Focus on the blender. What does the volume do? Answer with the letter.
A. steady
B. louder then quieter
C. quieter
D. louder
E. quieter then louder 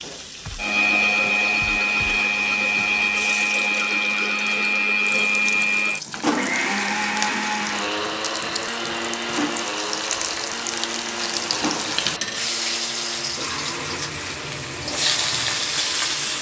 C.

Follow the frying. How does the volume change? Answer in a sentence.
The volume of the frying goes up.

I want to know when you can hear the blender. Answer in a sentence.
The blender can be heard from 0.1 to 16.3 s.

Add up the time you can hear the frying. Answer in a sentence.
You can hear the frying for 16 seconds altogether.